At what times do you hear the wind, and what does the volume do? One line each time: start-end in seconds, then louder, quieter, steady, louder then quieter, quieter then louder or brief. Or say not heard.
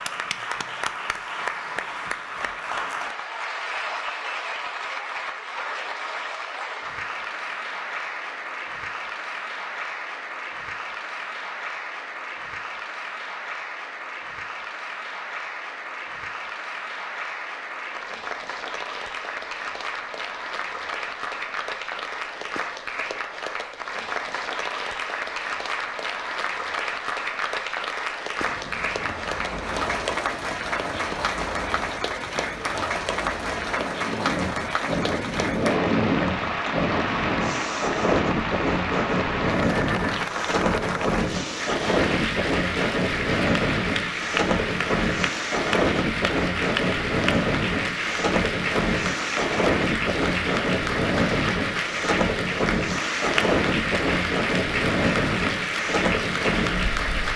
28.4-57.3 louder.